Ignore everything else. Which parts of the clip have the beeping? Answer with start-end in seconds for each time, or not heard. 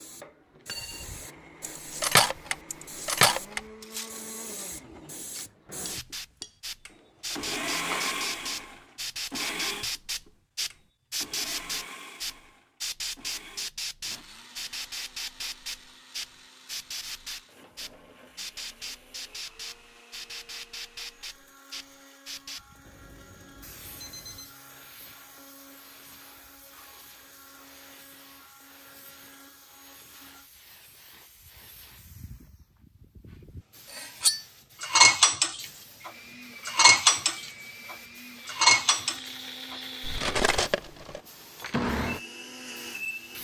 22.9-24.6.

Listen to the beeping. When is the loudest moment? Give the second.
24 s.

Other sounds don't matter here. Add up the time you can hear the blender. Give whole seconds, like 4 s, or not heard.
38 s.